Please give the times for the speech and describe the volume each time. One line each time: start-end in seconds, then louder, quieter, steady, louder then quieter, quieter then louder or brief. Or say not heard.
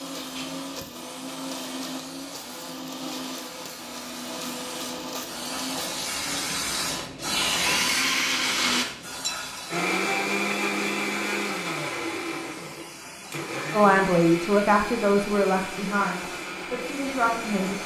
13.7-17.8 quieter then louder.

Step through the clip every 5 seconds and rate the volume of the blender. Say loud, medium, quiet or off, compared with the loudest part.
medium, loud, loud, medium.